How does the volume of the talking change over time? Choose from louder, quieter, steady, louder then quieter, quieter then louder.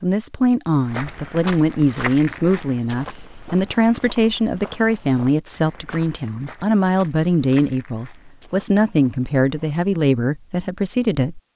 steady.